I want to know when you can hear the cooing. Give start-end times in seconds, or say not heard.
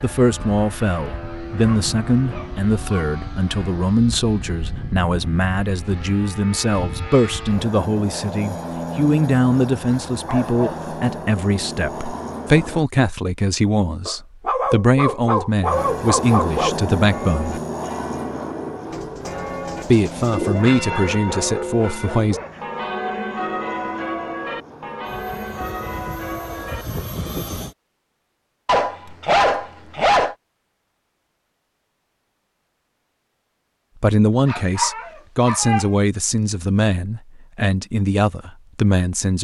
18.9-20.6.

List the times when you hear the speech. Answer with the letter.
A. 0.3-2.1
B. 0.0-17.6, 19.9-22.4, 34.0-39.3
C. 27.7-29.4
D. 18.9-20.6
B.